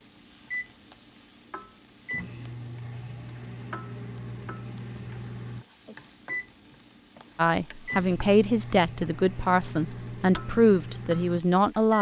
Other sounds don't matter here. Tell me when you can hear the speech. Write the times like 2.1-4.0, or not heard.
7.3-11.9.